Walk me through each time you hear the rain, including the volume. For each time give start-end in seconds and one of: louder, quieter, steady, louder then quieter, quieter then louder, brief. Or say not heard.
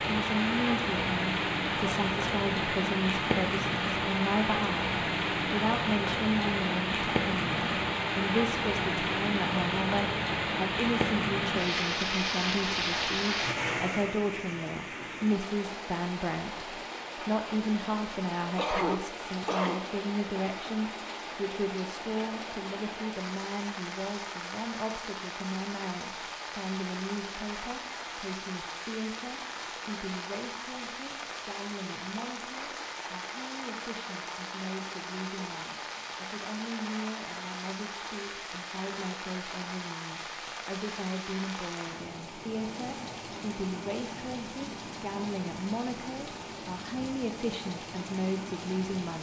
0.0-49.1 quieter.